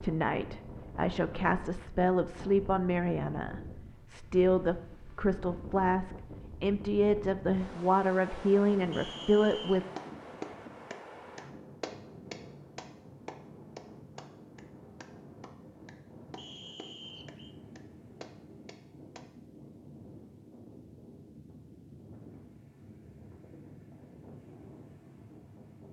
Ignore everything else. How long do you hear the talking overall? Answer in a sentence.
You can hear the talking for 10 seconds altogether.